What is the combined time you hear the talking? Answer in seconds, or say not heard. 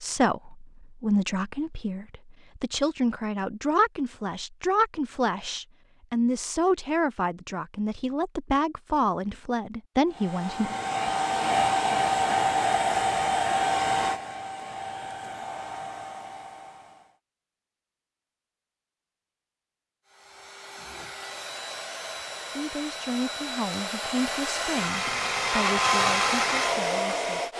16 s.